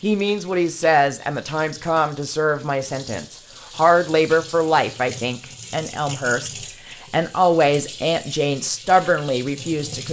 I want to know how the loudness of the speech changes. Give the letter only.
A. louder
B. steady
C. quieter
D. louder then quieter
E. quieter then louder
B.